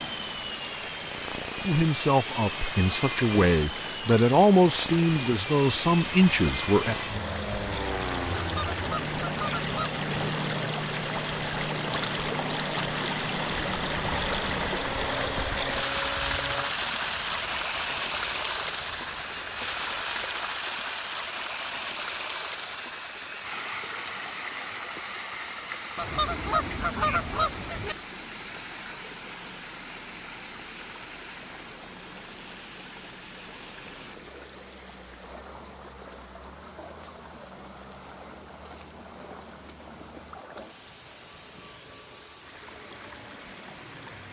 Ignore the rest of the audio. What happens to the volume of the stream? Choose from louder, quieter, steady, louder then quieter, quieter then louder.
louder then quieter.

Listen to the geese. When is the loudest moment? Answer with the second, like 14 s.
27 s.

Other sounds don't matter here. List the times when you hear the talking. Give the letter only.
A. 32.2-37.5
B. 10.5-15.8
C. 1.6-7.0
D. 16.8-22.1
C.